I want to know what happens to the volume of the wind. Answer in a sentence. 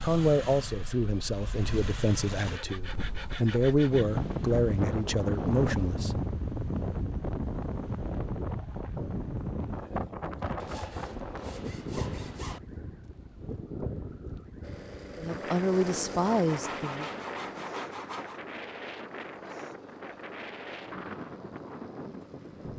The volume of the wind goes down.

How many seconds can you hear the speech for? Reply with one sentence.
You can hear the speech for 8 seconds altogether.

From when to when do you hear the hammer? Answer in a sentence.
You can't hear the hammer here.